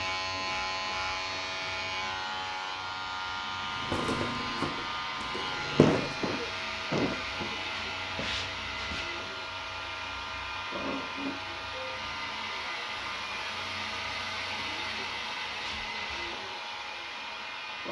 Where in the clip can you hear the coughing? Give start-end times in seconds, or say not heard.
5.8-7.5.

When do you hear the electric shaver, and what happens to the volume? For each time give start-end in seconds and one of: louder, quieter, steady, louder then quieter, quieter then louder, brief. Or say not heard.
0.0-17.8 quieter.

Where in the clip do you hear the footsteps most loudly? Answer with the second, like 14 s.
6 s.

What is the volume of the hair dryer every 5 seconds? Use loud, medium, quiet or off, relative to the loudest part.
medium, loud, loud, loud.